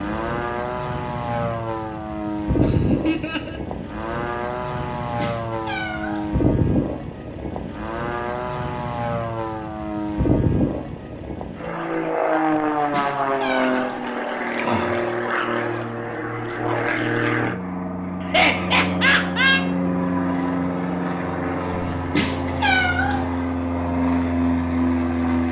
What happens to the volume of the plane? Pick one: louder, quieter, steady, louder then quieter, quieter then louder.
steady.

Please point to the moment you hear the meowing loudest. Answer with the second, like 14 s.
23 s.